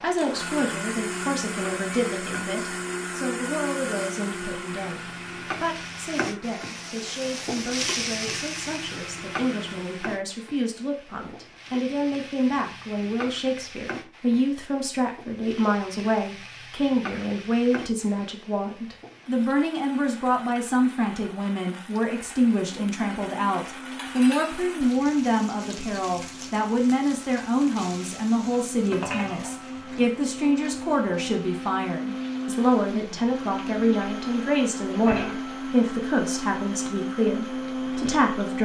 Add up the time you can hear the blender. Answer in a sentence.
The blender can be heard for 26 seconds in total.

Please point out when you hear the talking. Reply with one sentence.
The talking can be heard from 0.0 to 38.6 s.